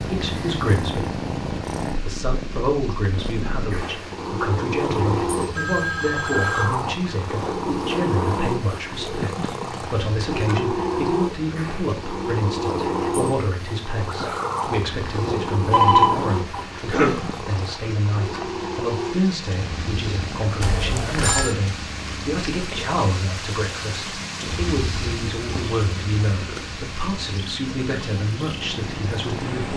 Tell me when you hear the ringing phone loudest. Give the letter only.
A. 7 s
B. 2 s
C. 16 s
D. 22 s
C.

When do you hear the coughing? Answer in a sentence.
The coughing can be heard from 16.8 to 17.3 s.